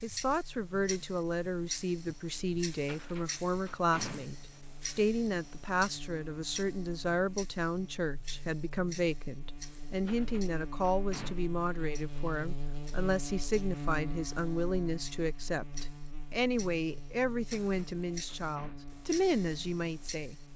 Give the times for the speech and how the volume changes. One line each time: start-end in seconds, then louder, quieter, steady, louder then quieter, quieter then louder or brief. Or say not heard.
0.0-20.4 steady.